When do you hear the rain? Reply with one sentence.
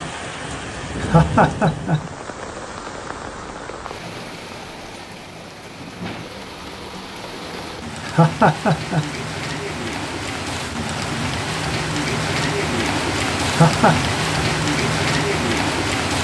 You can hear the rain from 0.0 to 16.1 s.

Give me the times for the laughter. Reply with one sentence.
You can hear the laughter from 1.0 to 2.0 s, from 8.1 to 9.1 s and from 13.4 to 13.9 s.